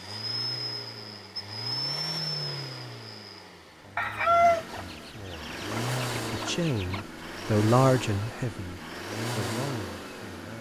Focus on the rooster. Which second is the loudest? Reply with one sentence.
The volume of the rooster peaks at 4 seconds.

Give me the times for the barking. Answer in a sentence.
The barking can't be heard in this clip.